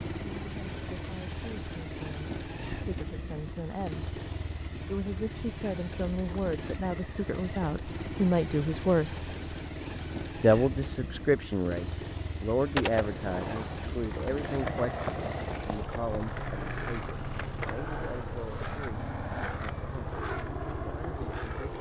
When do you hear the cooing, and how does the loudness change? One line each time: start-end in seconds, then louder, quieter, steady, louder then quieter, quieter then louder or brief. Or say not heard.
not heard.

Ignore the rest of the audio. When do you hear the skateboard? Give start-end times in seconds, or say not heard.
12.7-21.7.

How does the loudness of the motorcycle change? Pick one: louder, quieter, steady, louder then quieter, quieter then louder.
steady.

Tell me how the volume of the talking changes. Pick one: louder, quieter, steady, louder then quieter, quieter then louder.
louder then quieter.